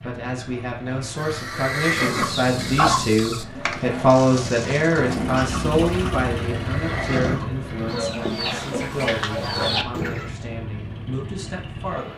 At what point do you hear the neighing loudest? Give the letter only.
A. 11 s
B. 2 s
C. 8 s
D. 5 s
B.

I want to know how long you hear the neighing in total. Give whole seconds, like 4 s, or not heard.
4 s.